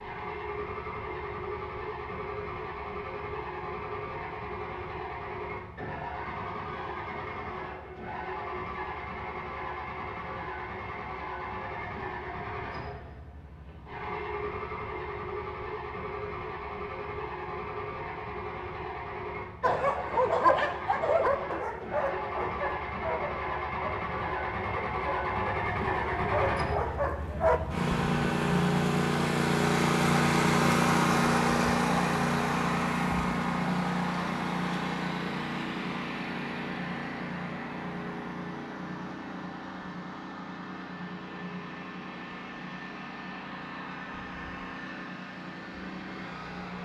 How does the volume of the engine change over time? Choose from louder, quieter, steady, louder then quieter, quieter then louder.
louder then quieter.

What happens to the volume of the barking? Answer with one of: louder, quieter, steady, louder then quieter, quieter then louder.
quieter then louder.